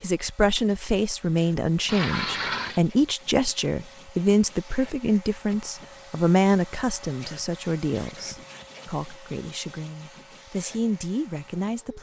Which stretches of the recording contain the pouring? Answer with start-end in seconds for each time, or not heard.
1.9-2.8.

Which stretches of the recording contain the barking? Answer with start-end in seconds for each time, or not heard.
not heard.